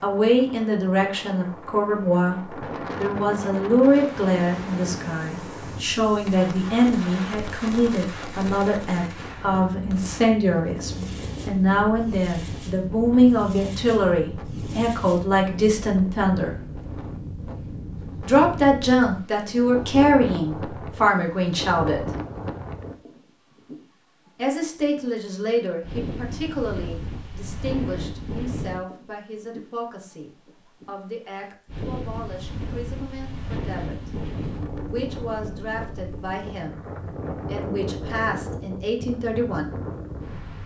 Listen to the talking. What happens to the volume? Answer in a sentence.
The loudness of the talking goes down.